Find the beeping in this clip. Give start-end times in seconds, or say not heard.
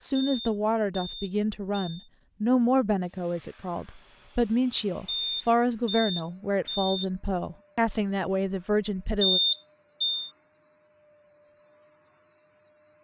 0.2-2.1, 5.0-7.0, 9.2-10.3.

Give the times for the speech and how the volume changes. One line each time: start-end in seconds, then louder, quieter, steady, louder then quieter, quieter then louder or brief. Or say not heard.
0.0-9.4 steady.